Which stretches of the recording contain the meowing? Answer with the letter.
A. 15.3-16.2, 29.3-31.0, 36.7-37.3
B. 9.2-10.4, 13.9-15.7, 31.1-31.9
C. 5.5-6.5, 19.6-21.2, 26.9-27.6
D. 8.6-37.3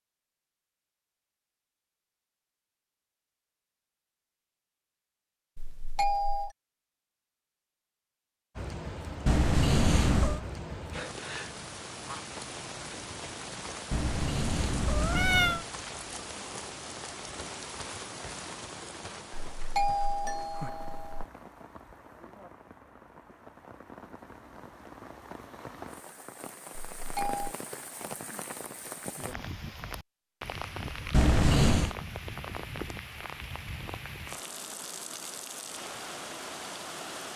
B.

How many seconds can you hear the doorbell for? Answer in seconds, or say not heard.
3 s.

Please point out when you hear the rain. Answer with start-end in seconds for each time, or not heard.
8.6-37.3.